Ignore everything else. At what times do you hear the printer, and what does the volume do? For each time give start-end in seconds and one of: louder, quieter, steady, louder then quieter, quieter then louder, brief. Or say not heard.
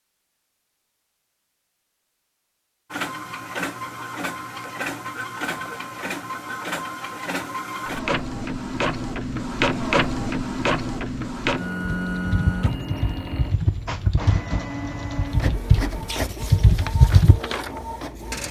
2.9-18.4 louder then quieter.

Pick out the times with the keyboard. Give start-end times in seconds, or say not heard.
11.8-17.4.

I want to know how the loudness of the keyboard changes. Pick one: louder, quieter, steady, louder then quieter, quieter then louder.
louder.